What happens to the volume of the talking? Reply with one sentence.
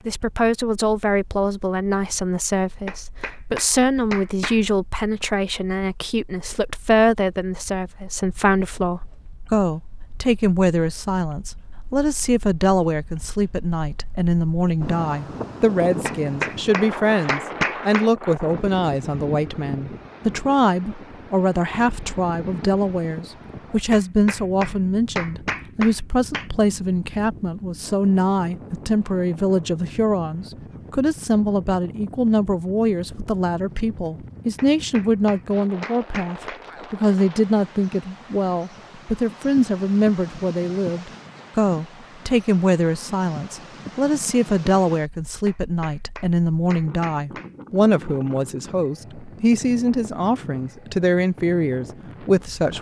The volume of the talking stays about the same.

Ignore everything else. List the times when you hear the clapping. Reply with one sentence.
You can hear the clapping from 2.9 to 4.6 s, from 16.1 to 18.1 s, from 23.9 to 26.5 s, from 34.5 to 36.6 s and from 45.5 to 47.5 s.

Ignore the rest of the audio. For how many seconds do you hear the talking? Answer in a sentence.
You can hear the talking for 53 seconds altogether.